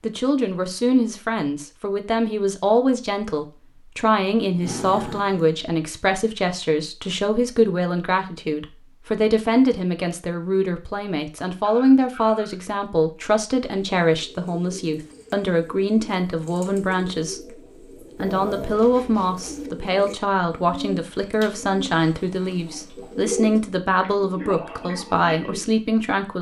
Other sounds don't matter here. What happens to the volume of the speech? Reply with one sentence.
The volume of the speech stays about the same.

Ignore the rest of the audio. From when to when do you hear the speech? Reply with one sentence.
The speech can be heard from 0.0 to 26.3 s.